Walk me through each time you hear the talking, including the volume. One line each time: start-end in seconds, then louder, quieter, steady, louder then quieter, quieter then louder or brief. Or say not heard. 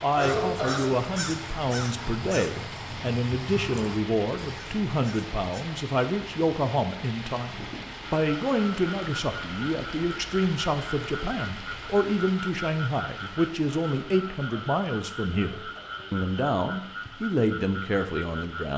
0.0-18.7 steady.